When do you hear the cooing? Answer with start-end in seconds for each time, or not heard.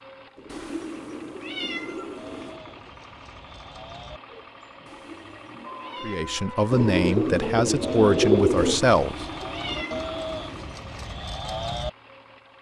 0.3-3.0, 6.7-8.8.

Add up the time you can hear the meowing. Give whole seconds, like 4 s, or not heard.
6 s.